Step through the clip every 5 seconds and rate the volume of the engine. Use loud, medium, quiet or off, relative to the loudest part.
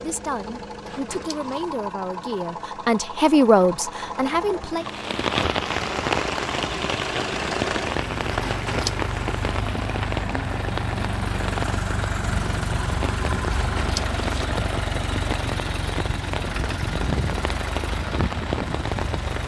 medium, loud, loud, loud.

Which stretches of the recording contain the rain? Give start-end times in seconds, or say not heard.
4.8-19.4.